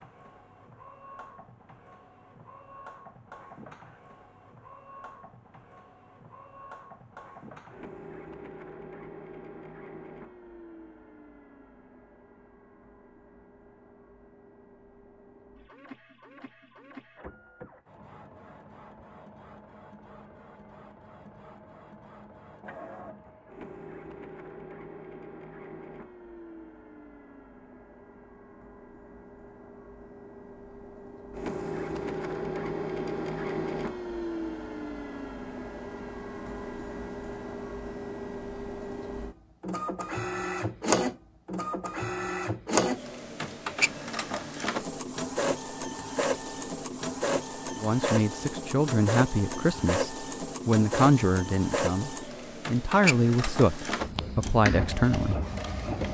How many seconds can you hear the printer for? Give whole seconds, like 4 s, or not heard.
56 s.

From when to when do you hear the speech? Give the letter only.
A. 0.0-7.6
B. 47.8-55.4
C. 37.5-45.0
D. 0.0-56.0
B.